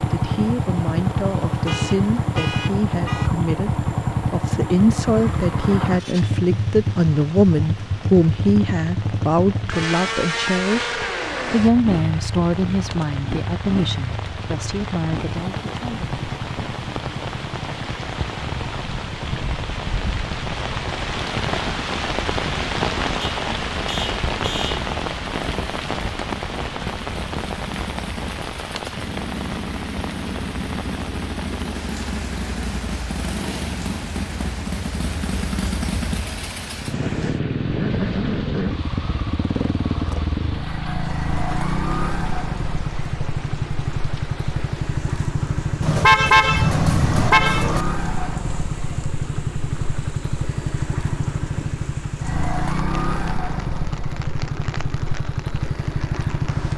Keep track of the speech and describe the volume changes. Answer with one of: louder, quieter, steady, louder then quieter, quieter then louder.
louder then quieter.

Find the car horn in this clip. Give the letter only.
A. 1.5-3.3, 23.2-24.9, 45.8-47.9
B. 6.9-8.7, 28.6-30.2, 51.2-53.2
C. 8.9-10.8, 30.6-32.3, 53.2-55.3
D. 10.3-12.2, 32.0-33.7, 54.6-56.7
A.